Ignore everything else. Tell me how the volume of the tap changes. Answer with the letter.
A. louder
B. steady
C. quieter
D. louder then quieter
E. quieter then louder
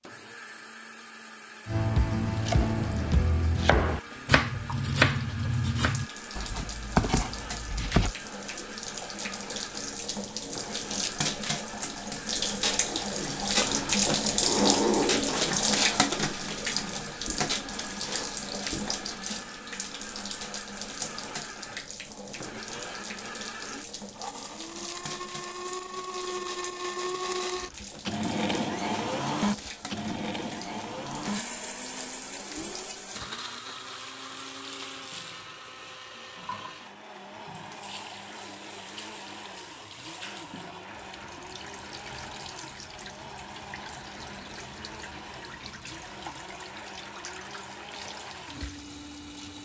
D.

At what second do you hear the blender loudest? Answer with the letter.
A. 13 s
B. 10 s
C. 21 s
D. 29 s
D.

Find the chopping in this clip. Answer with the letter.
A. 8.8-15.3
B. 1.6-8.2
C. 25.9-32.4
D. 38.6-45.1
B.